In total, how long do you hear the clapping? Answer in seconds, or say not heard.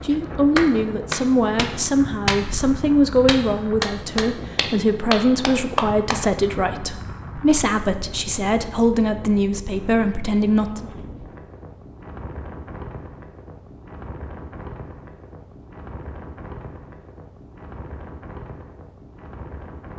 6 s.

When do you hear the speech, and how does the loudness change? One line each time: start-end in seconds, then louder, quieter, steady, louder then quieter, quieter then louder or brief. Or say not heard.
0.0-10.9 steady.